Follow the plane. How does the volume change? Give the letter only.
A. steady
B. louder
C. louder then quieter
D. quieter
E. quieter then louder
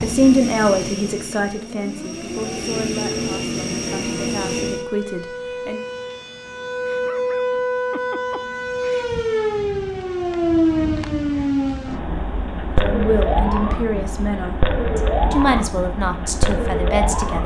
E.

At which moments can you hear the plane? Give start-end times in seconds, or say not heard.
0.0-4.8.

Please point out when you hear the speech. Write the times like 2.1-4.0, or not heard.
0.0-5.8, 12.8-17.4.